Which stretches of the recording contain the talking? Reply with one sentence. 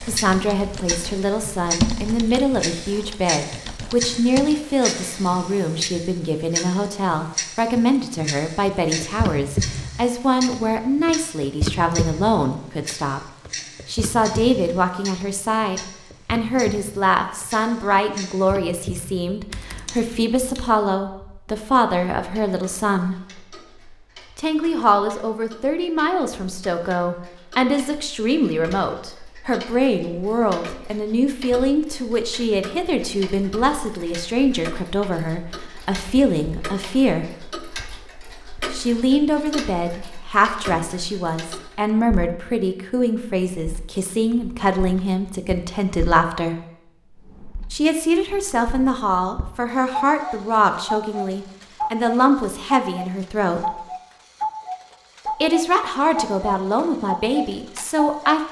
You can hear the talking from 0.0 to 23.1 s, from 24.4 to 37.2 s, from 38.7 to 46.5 s, from 47.7 to 53.8 s and from 55.2 to 58.4 s.